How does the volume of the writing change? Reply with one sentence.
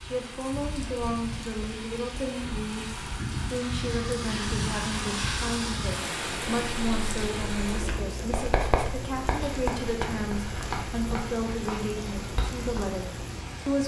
The loudness of the writing goes up, then down.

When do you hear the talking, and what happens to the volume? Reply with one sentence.
You can hear the talking from 0.0 to 13.8 s, at a steady volume.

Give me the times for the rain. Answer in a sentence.
The rain can be heard from 0.0 to 13.8 s.